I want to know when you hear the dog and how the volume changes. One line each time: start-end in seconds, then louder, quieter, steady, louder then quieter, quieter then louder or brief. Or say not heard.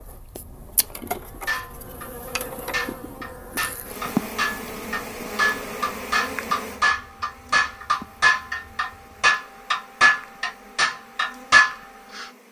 not heard.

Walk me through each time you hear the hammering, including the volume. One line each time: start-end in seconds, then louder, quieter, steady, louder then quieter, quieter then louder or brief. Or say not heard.
1.4-12.3 louder.